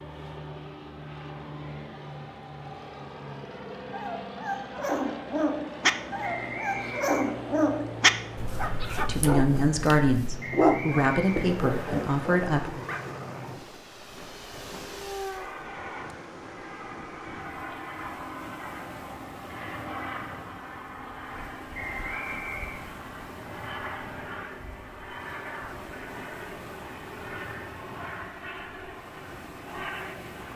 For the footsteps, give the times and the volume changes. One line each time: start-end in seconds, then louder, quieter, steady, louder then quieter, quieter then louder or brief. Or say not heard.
not heard.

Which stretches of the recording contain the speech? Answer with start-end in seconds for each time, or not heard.
8.9-12.8.